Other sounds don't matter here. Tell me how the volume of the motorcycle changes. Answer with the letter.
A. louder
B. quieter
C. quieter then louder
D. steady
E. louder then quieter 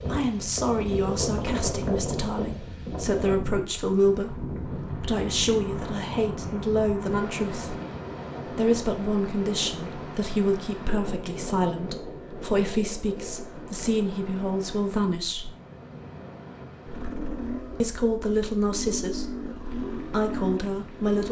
C.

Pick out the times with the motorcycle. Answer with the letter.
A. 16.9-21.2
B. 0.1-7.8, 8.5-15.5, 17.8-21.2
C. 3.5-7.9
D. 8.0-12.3
A.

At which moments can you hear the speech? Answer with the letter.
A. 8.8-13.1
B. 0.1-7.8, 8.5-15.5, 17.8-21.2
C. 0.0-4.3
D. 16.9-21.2
B.